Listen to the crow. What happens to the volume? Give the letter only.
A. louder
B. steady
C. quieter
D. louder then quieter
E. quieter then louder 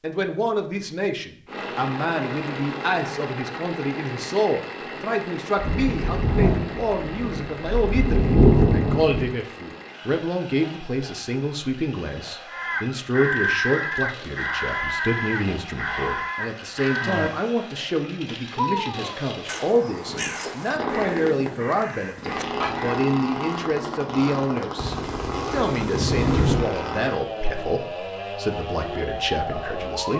C.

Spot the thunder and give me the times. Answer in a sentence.
You can hear the thunder from 5.5 to 9.2 s and from 24.8 to 26.6 s.